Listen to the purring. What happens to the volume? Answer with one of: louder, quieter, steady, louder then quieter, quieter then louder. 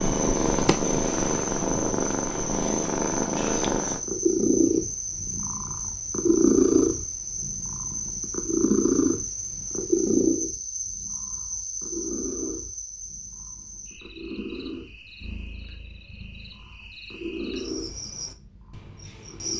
quieter.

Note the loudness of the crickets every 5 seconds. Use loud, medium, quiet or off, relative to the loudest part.
loud, loud, loud, medium.